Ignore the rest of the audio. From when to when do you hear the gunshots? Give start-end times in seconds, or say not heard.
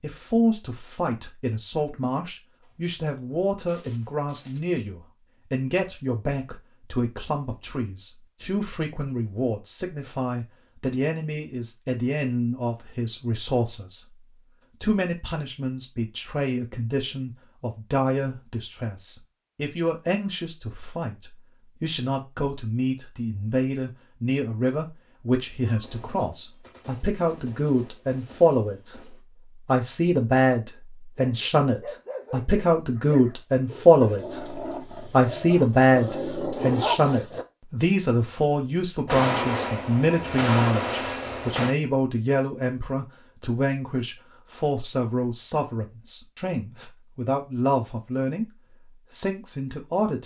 2.6-4.6, 25.6-29.2, 39.0-41.8.